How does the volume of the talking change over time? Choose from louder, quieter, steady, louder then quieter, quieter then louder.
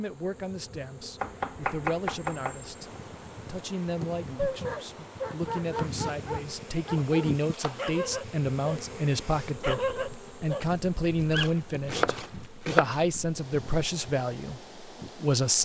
louder.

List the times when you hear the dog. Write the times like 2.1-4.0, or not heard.
4.3-8.8, 9.6-11.5.